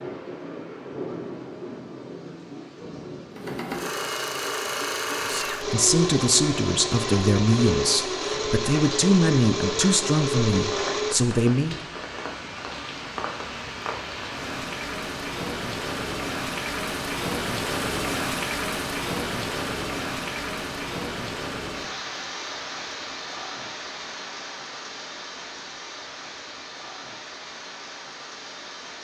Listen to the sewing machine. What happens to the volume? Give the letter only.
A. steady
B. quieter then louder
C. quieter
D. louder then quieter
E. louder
A.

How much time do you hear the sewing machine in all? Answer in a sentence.
You can hear the sewing machine for 8 seconds altogether.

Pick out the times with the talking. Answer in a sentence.
You can hear the talking from 5.2 to 11.8 s.